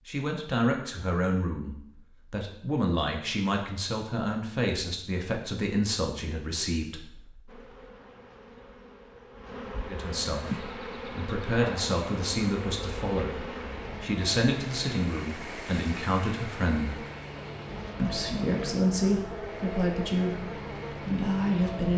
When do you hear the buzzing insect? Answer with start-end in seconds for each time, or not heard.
7.5-21.9.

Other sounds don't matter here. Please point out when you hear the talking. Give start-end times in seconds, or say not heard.
0.1-7.5, 9.8-17.0, 17.9-21.9.